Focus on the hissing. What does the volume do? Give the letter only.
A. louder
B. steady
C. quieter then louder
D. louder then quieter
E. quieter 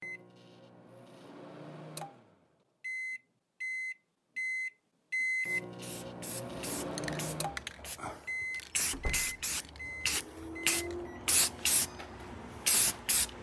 A.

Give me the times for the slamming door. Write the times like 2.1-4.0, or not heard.
8.9-9.3.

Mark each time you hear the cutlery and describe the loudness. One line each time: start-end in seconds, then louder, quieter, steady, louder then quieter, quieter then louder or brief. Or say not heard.
not heard.